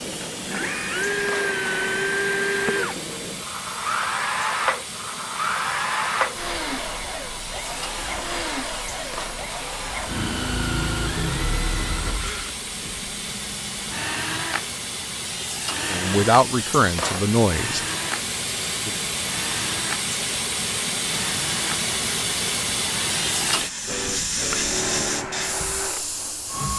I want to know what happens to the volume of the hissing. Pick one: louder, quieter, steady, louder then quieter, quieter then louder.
louder.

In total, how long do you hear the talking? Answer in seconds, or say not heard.
2 s.